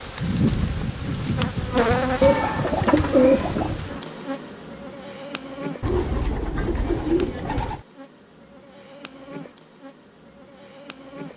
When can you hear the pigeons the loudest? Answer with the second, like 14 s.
3 s.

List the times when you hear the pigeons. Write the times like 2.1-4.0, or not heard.
2.2-3.8, 5.8-7.8.